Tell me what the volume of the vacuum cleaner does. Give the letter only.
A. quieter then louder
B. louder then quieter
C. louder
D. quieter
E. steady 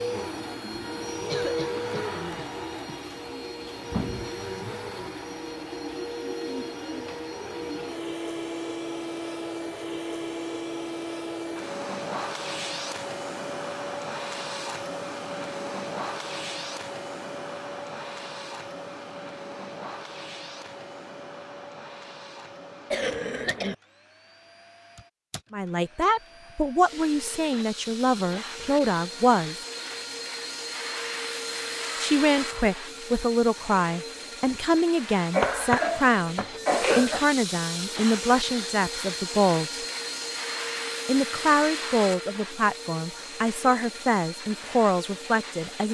A.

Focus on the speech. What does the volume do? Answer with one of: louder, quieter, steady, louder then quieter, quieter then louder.
steady.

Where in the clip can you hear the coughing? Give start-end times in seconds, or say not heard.
1.1-3.0, 22.9-23.8, 35.3-37.2.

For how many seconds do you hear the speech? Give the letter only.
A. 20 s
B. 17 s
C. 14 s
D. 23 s
B.